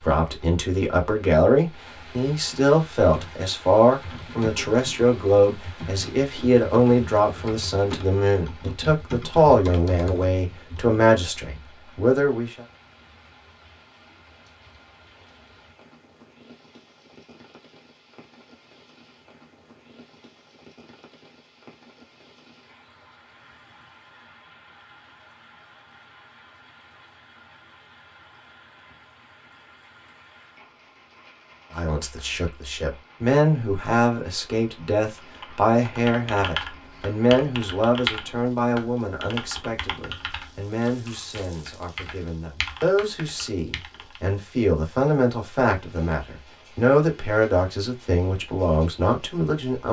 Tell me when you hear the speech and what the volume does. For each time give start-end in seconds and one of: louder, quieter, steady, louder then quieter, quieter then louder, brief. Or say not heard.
0.0-12.5 steady
31.8-49.8 quieter then louder.